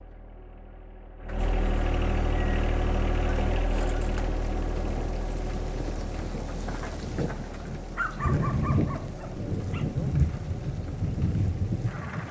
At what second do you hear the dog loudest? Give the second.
8 s.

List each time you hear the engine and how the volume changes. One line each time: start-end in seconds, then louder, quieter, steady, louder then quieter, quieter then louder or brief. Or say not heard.
0.0-12.2 quieter.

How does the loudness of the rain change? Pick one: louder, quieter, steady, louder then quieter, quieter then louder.
louder.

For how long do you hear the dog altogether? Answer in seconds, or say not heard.
2 s.